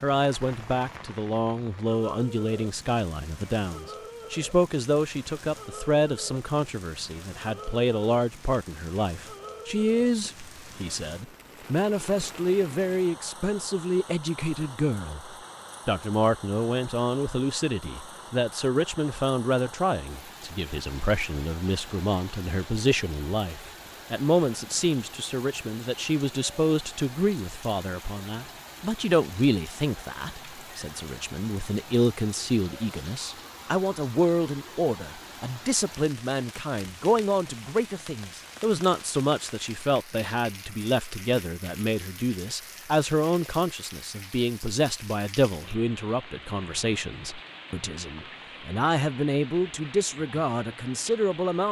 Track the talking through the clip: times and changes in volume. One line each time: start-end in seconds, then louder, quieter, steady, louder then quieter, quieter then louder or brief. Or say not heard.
0.0-51.6 steady.